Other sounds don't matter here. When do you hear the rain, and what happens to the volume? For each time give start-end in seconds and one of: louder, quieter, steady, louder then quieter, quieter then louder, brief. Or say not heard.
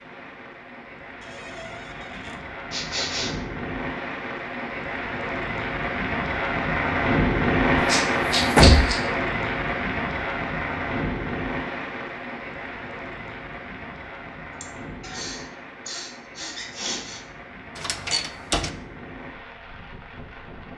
0.0-20.7 louder then quieter.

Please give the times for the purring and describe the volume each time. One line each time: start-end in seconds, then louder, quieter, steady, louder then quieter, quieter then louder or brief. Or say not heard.
not heard.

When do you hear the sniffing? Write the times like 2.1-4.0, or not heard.
2.7-3.4, 7.8-9.0, 14.6-17.2.